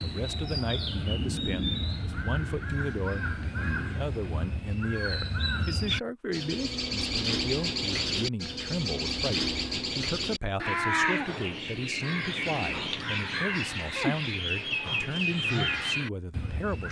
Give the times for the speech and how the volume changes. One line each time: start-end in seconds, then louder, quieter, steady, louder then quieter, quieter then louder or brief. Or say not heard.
0.0-16.8 steady.